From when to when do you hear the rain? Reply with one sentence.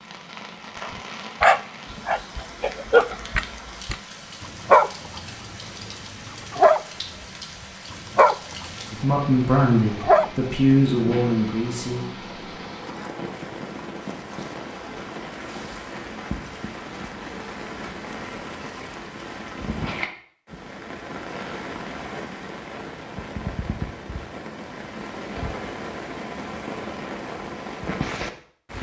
The rain can be heard from 0.0 to 28.7 s.